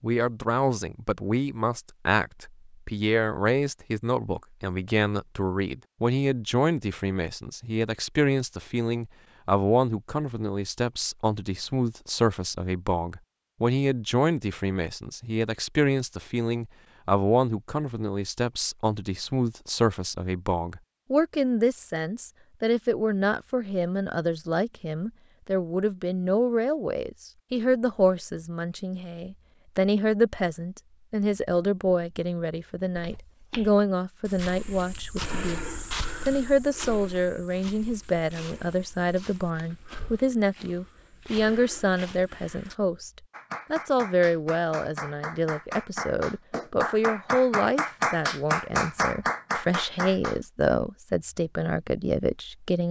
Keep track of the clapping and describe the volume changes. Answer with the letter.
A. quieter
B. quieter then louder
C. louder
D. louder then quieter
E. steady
C.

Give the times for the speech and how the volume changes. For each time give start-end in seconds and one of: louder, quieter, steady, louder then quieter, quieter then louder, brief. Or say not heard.
0.0-43.1 steady
43.7-52.8 steady.